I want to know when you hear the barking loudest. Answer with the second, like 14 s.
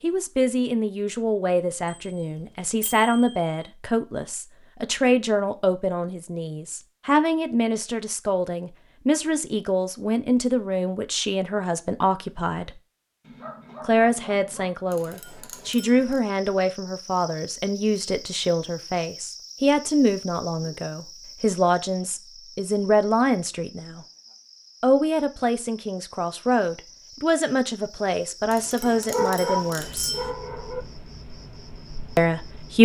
29 s.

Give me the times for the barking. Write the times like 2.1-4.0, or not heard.
13.2-14.8, 28.9-30.9.